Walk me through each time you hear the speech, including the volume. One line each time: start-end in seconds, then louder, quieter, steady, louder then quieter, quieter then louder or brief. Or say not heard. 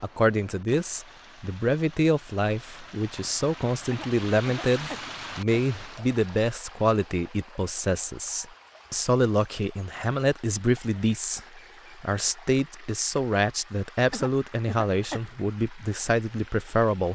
0.0-17.0 steady.